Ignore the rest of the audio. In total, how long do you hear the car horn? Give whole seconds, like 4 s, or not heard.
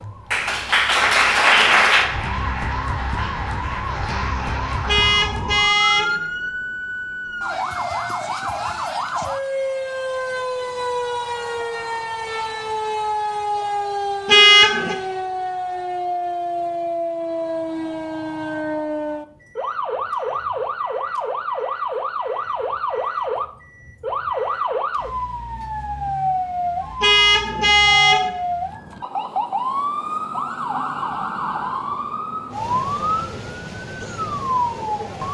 3 s.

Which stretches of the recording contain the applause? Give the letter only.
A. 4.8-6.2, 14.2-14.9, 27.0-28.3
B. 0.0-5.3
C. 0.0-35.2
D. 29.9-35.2
B.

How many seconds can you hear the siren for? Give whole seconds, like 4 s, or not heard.
35 s.